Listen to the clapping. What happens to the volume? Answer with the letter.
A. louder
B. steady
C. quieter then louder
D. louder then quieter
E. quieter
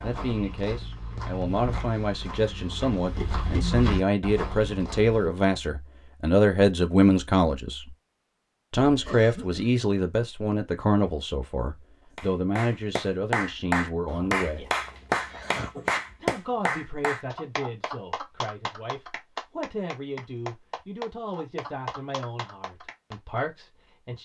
E.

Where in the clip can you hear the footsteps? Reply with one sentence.
The footsteps can be heard from 0.0 to 5.3 s.